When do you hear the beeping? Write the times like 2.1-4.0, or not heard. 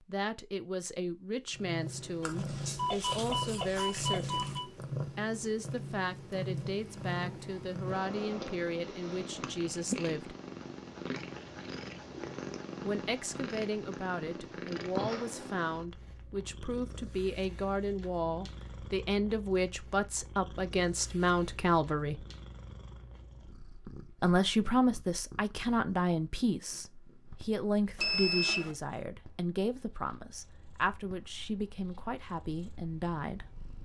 2.2-4.7, 27.9-28.8.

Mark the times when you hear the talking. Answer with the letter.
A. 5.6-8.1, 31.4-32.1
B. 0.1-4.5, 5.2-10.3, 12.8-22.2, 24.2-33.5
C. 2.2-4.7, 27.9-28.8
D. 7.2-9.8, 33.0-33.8
B.